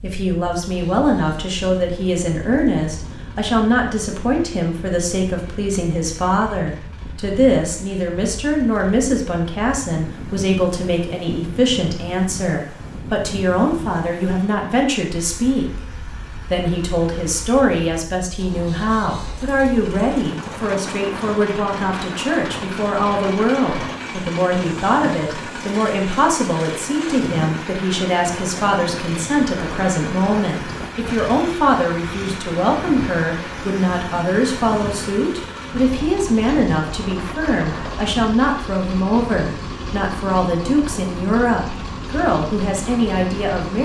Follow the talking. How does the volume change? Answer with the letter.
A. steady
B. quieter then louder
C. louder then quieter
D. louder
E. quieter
A.